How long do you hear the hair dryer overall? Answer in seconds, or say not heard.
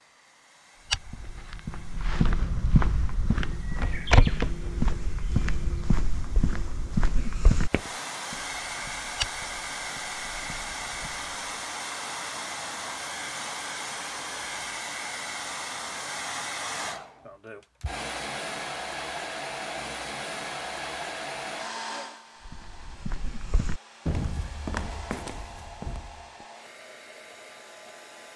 28 s.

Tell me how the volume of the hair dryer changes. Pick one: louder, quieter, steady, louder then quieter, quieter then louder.
louder then quieter.